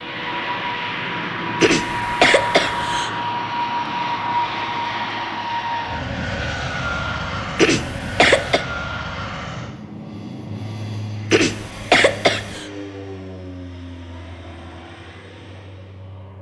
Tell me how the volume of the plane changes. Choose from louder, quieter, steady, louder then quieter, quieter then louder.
quieter.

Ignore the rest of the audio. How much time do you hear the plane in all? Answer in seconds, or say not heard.
16 s.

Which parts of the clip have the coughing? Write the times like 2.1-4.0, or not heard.
1.6-3.1, 7.5-8.7, 11.3-12.7.